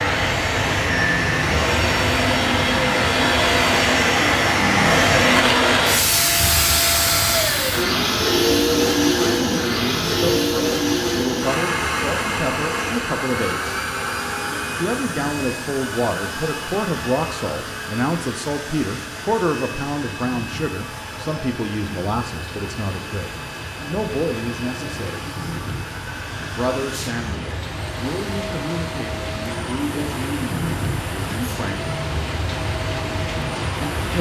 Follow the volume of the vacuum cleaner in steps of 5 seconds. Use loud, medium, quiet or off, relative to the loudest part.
loud, loud, medium, quiet, quiet, quiet, quiet.